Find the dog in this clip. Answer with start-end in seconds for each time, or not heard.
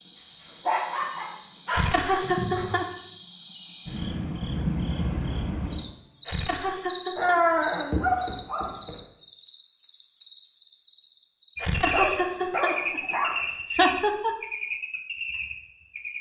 0.1-2.8, 7.2-8.9, 11.9-13.5.